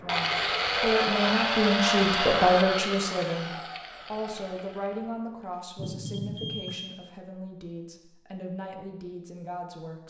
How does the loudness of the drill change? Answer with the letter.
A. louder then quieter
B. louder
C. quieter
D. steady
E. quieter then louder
C.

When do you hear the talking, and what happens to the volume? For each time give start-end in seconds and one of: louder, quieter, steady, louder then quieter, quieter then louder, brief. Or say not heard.
0.0-10.0 quieter.